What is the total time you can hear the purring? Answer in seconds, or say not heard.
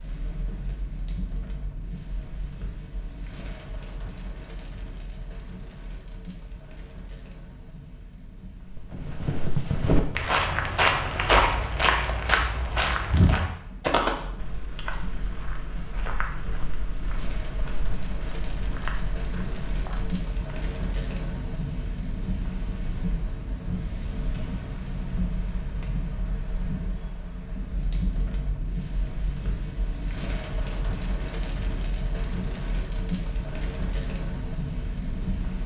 not heard.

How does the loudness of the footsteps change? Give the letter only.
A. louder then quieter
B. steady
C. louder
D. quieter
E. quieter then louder
D.